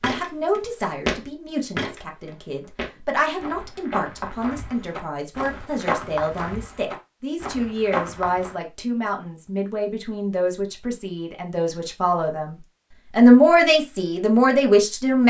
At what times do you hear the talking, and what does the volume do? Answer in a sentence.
The talking can be heard from 0.0 to 15.2 s, getting louder.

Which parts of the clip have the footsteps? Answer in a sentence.
You can hear the footsteps from 0.0 to 8.6 s.